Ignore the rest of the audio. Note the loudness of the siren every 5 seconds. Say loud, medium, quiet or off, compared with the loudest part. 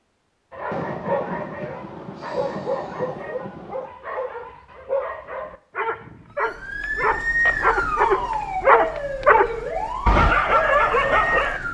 off, loud, loud.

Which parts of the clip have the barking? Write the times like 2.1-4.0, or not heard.
0.5-9.4, 10.1-11.6.